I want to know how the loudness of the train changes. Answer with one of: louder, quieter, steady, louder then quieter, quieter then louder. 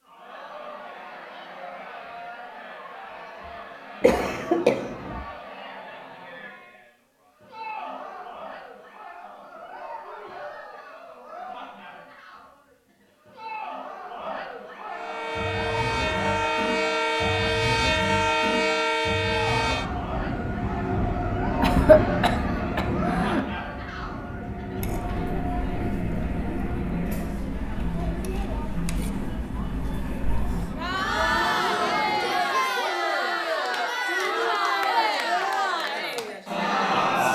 quieter.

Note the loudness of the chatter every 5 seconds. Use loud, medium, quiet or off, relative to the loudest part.
quiet, quiet, quiet, medium, medium, medium, loud, loud.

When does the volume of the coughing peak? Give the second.
22 s.